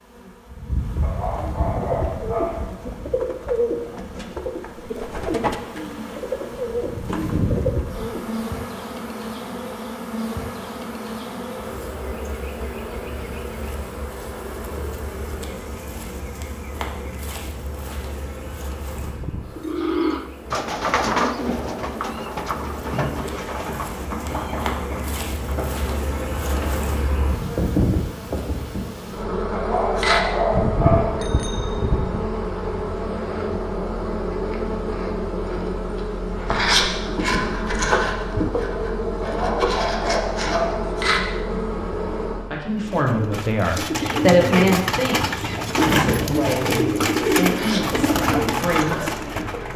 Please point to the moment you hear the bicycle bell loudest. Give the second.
31 s.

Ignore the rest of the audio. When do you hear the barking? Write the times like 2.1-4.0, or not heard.
1.0-2.6, 29.5-31.2, 39.2-40.9.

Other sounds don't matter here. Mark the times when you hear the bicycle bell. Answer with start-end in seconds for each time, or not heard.
18.9-19.8, 30.5-32.2.